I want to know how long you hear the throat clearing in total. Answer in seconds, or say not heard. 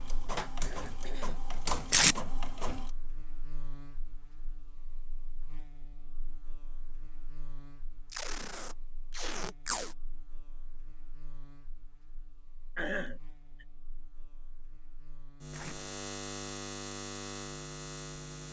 2 s.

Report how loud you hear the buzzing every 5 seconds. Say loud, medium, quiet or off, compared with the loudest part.
quiet, quiet, quiet, loud.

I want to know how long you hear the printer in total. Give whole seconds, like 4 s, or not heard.
3 s.